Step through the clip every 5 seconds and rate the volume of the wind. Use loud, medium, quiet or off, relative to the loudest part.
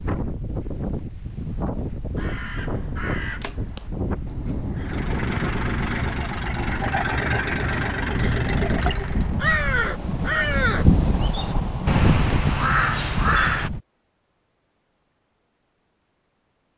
medium, medium, loud, off.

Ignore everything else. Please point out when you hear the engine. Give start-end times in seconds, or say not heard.
4.8-9.4.